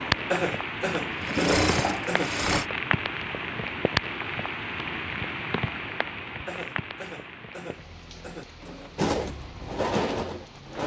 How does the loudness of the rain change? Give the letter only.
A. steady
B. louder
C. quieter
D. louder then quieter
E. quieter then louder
C.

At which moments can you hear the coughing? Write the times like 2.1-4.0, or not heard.
0.3-2.3, 6.5-8.4.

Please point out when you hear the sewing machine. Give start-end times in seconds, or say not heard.
0.0-2.6, 8.6-10.8.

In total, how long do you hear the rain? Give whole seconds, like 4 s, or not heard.
11 s.